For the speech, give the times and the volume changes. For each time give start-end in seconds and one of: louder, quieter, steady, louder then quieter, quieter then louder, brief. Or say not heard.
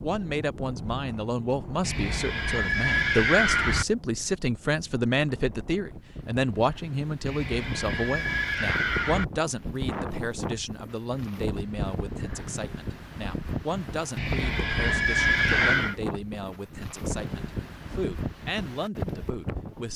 0.0-19.9 quieter.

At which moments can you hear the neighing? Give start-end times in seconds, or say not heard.
1.8-3.9, 7.2-9.2, 14.2-15.9.